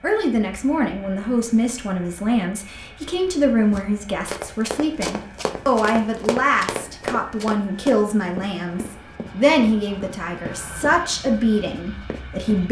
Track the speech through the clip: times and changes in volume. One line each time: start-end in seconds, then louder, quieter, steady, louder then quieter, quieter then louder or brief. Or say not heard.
0.0-12.6 steady.